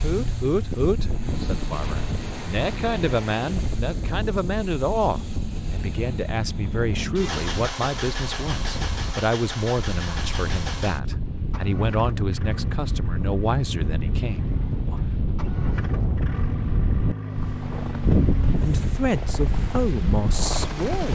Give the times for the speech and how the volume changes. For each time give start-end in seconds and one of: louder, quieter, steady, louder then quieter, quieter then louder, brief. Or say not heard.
0.0-15.2 steady
18.6-21.1 brief.